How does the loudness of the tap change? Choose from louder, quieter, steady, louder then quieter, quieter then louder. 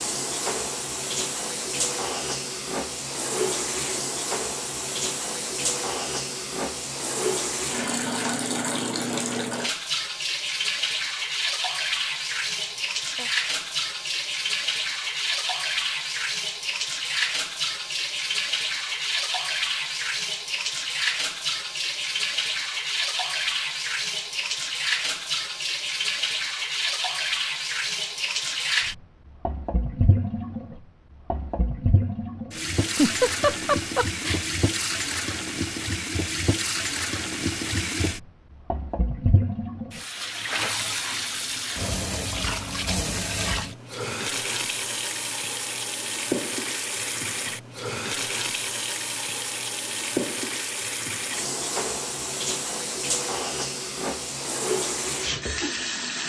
steady.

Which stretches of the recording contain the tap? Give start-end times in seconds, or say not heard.
0.0-56.2.